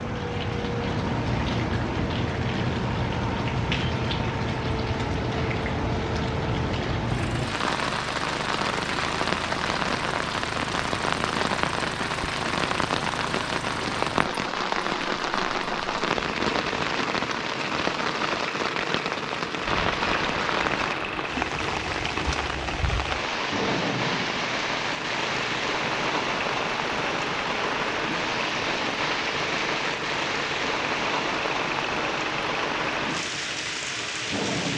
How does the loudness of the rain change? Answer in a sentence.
The volume of the rain stays about the same.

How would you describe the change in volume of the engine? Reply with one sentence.
The volume of the engine stays about the same.